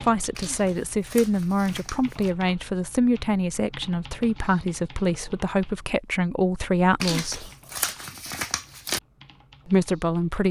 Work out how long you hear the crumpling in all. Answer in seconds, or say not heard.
4 s.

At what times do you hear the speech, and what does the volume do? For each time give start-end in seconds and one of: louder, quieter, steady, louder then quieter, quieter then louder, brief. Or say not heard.
0.0-7.5 steady
9.7-10.4 brief.